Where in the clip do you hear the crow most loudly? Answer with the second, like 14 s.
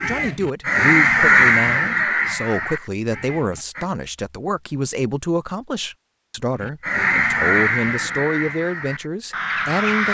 1 s.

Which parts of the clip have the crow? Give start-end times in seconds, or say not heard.
0.0-3.9, 6.6-10.0.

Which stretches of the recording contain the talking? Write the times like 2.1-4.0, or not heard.
0.0-10.0.